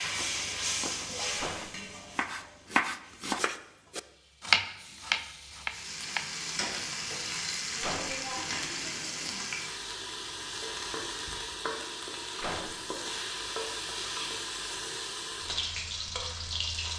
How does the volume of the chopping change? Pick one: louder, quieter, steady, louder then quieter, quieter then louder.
louder then quieter.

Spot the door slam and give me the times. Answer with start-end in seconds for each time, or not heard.
1.4-1.8, 7.8-8.2, 12.4-12.9.